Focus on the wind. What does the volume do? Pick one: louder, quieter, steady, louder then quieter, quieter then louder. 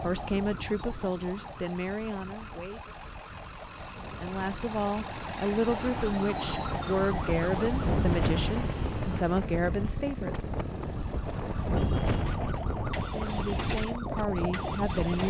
louder.